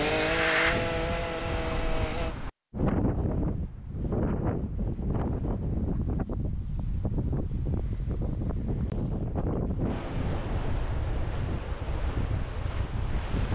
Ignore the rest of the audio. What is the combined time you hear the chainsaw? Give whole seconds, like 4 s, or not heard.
2 s.